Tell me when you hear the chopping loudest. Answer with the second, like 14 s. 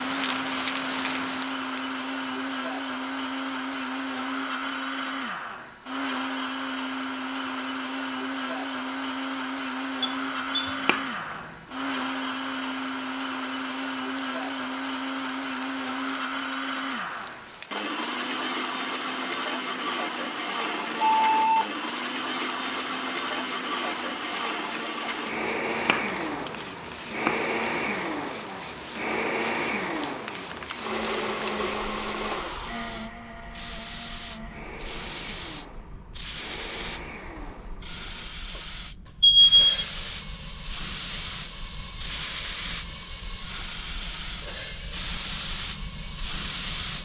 27 s.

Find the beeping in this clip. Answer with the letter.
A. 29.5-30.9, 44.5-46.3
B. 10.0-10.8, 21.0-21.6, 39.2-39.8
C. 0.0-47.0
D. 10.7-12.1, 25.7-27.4
B.